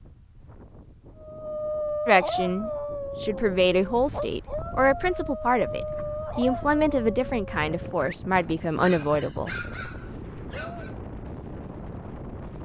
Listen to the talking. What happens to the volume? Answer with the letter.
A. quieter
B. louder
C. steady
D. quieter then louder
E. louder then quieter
C.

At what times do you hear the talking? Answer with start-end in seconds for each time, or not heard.
2.0-9.6.